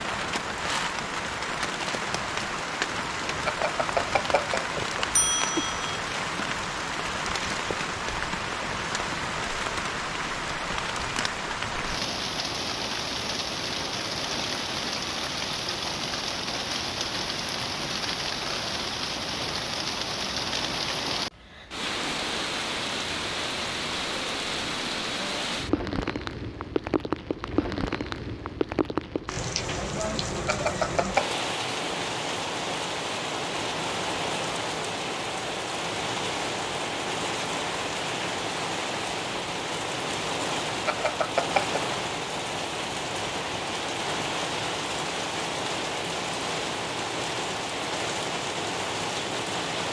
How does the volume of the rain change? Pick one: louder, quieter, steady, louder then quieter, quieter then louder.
steady.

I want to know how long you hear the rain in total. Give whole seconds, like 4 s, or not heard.
50 s.